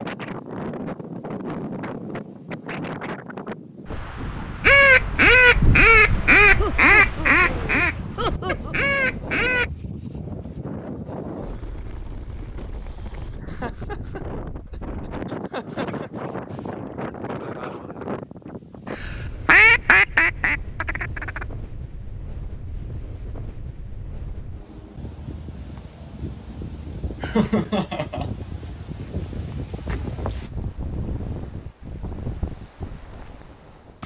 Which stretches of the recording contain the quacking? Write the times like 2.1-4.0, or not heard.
4.6-9.7, 18.9-21.4.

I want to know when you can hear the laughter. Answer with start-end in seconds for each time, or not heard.
6.5-8.8, 13.4-16.1, 27.2-28.2.